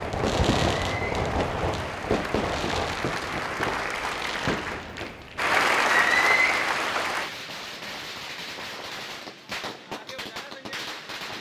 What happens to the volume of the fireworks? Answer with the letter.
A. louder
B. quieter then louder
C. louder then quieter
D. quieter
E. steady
D.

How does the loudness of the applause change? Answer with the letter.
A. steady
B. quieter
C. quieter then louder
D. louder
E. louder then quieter
D.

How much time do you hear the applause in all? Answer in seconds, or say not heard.
7 s.